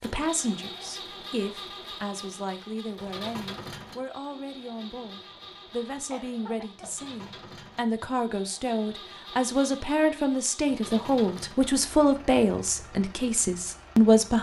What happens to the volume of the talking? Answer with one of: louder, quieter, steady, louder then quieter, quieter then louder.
louder.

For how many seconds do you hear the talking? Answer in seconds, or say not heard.
14 s.